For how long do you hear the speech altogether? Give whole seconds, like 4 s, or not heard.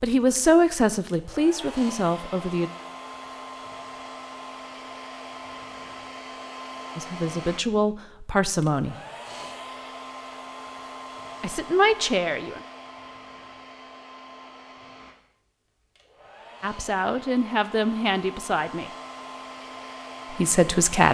9 s.